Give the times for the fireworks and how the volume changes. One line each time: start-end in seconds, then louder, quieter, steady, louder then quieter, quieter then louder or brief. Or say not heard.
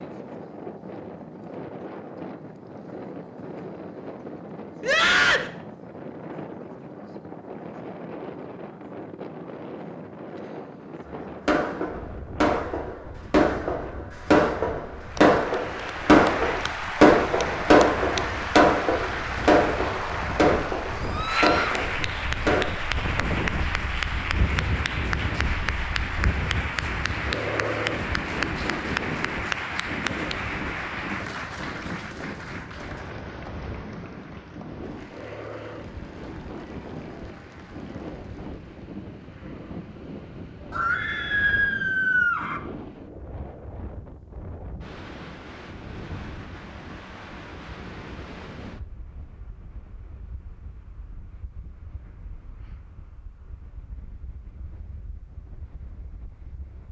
11.1-22.8 louder then quieter.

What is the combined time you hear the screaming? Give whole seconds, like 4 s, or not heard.
3 s.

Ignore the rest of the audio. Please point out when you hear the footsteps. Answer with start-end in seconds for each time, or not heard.
not heard.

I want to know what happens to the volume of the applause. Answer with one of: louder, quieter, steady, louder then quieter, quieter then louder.
quieter.